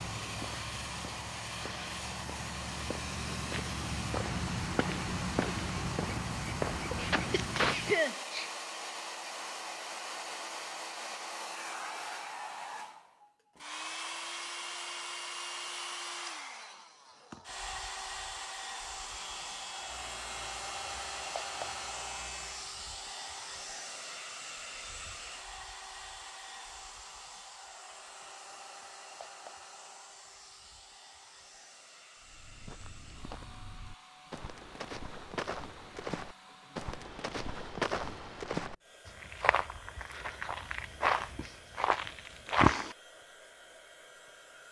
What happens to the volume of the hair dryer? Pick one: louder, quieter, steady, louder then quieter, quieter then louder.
quieter.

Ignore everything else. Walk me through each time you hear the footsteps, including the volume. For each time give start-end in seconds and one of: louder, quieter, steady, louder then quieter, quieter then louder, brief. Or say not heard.
0.0-8.0 louder
32.2-43.0 louder.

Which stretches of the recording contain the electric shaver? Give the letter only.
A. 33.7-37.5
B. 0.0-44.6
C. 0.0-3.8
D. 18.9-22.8
D.